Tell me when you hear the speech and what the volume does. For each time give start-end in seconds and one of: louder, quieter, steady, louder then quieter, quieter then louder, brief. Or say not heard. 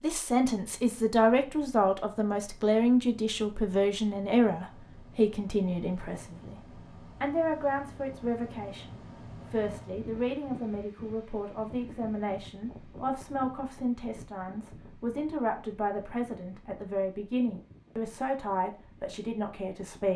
0.0-20.1 quieter.